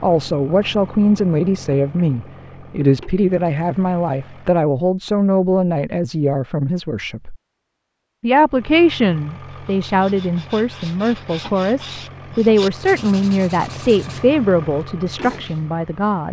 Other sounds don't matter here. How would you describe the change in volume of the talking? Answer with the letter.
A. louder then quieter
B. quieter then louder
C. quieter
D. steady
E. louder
D.